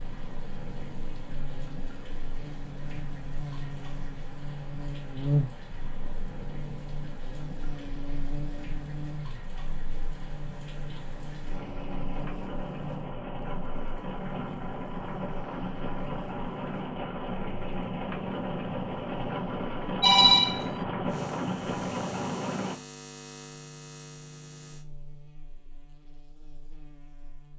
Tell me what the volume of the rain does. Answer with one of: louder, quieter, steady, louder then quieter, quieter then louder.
louder.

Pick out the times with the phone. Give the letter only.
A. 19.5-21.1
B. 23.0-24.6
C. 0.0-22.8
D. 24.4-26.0
A.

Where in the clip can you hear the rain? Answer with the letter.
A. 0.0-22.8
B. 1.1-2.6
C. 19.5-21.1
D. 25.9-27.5
A.